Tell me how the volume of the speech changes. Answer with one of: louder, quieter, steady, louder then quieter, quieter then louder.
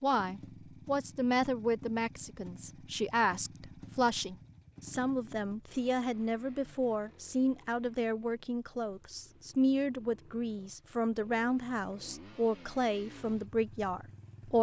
steady.